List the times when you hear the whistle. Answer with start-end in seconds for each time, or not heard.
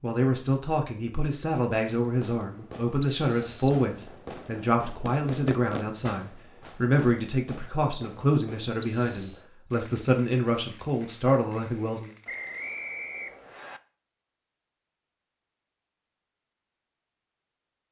3.0-3.8, 8.8-9.4, 12.2-13.8.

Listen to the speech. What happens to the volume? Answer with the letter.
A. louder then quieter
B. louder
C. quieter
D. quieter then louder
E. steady
E.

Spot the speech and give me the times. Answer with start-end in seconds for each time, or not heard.
0.0-12.1.